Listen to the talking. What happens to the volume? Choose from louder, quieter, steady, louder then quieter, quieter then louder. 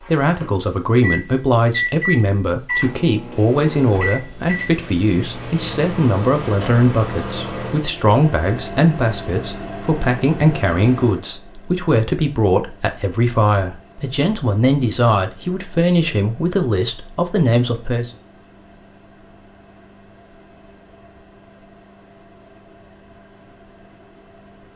steady.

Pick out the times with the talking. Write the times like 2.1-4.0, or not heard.
0.1-18.1.